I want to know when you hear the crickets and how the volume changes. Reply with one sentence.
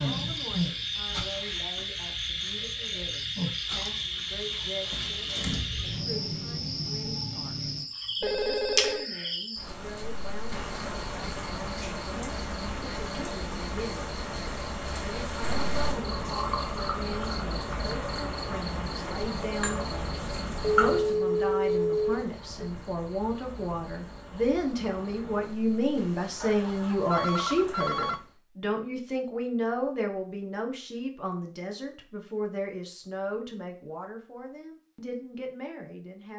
You can hear the crickets from 0.0 to 28.4 s, getting quieter.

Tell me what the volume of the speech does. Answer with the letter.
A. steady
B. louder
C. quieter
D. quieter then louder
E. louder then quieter
E.